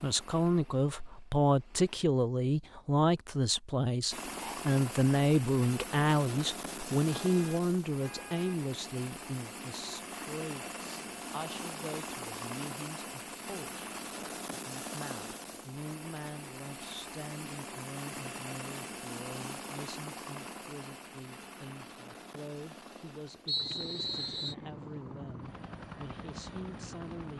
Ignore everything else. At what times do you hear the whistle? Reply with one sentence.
You can hear the whistle from 23.4 to 24.6 s.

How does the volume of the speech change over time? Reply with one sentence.
The loudness of the speech goes down.